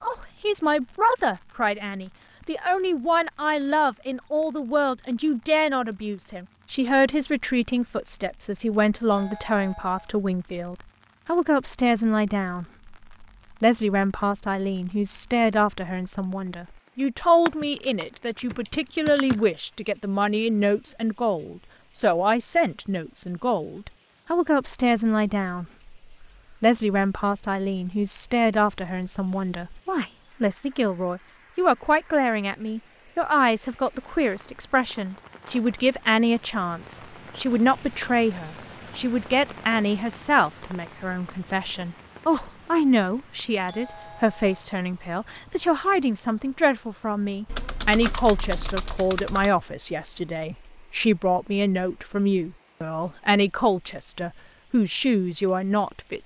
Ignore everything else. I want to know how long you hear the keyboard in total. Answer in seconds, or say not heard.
4 s.